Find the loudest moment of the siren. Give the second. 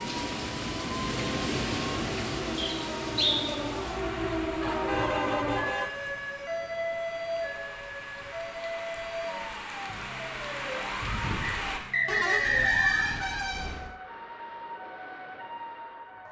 5 s.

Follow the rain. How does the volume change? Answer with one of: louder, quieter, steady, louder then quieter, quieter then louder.
quieter then louder.